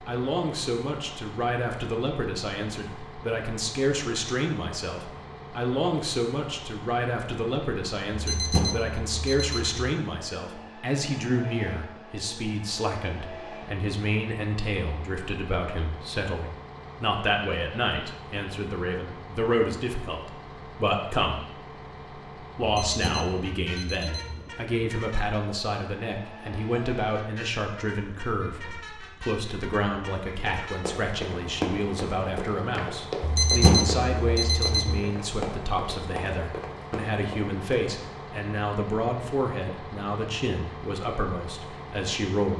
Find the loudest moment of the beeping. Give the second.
34 s.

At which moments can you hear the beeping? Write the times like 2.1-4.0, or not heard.
8.1-9.9, 22.6-24.4, 33.2-35.0.